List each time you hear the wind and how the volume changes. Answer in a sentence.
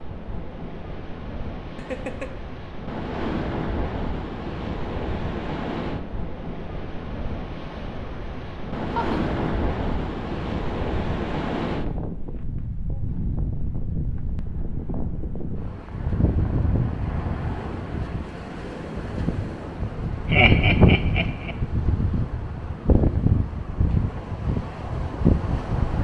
You can hear the wind from 0.0 to 25.9 s, getting louder.